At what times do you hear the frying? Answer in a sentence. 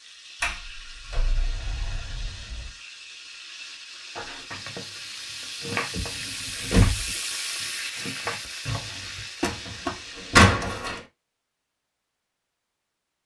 The frying can be heard from 0.0 to 10.4 s.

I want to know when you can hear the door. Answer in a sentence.
The door can be heard from 0.4 to 2.7 s, from 5.9 to 7.2 s and from 9.4 to 11.0 s.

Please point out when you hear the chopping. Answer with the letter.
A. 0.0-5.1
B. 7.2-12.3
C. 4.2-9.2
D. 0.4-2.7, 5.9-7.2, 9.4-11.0
C.